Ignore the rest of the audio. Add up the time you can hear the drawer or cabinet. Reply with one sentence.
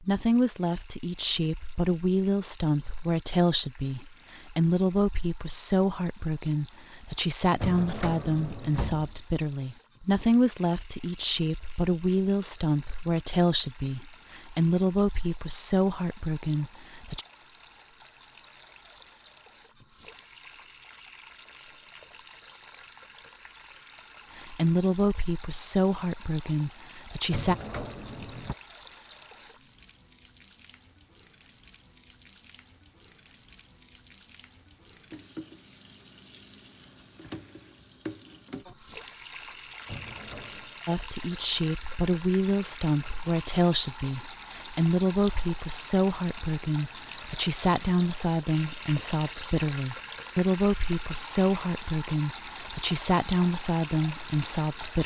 The drawer or cabinet can be heard for 4 seconds in total.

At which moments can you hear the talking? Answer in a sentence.
You can hear the talking from 0.0 to 17.2 s, from 24.4 to 27.6 s and from 40.9 to 55.0 s.